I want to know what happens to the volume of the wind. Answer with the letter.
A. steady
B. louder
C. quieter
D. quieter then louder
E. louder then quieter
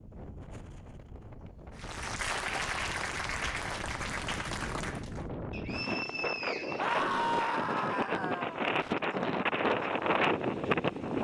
B.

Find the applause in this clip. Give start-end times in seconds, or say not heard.
1.8-5.2.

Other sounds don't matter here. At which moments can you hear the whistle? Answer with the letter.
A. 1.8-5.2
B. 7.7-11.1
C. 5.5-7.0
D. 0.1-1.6
C.